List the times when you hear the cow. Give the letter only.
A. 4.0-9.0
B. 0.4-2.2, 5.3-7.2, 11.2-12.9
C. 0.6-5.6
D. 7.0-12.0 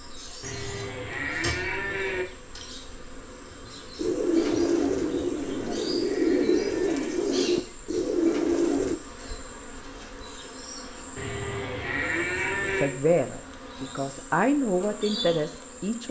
B.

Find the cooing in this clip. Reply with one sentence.
You can hear the cooing from 4.0 to 9.0 s.